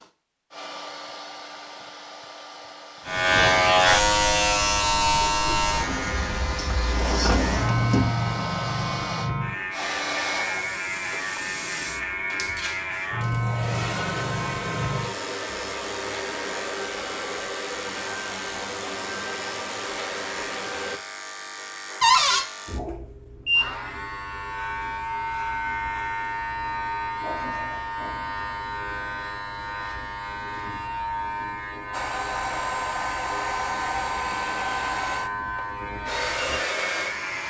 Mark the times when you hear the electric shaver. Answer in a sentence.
The electric shaver can be heard from 3.0 to 37.4 s.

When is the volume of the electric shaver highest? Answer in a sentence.
The loudest moment of the electric shaver is at 4 seconds.